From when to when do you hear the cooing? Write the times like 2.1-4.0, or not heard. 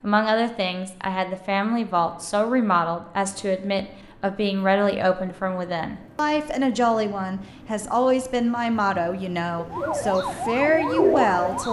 9.6-11.6.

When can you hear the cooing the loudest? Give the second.
11 s.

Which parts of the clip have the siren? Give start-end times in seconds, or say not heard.
9.7-11.6.